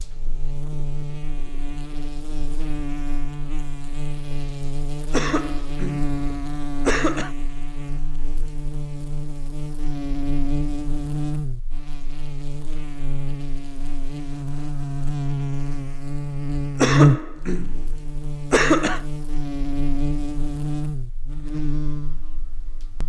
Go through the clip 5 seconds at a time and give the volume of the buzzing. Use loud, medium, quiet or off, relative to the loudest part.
medium, medium, medium, loud, medium.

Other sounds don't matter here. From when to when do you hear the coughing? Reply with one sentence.
You can hear the coughing from 5.1 to 6.1 s, from 6.8 to 7.3 s and from 16.8 to 19.0 s.